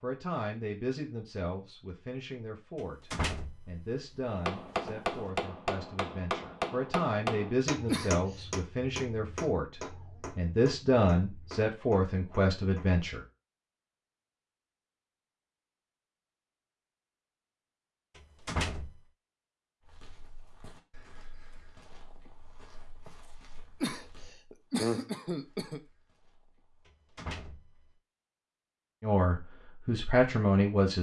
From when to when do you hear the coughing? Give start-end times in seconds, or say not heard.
7.8-8.4, 23.8-25.8.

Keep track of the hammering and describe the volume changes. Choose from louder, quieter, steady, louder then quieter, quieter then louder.
quieter.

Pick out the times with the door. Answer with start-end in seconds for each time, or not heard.
2.8-5.3, 18.1-19.0, 26.9-27.9.